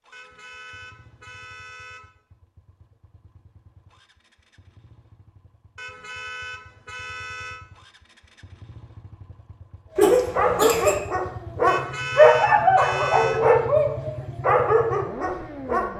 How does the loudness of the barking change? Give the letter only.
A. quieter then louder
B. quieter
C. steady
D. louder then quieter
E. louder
D.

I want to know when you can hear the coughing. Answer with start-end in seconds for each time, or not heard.
9.9-11.0.